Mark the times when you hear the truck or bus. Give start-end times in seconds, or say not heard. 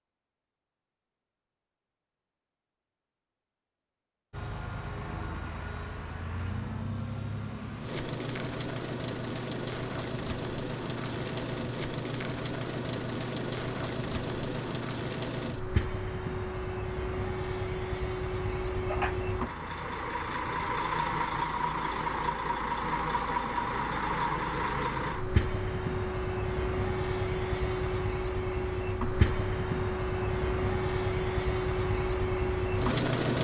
4.3-33.3.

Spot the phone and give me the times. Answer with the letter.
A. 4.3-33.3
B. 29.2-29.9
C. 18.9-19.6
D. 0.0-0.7
C.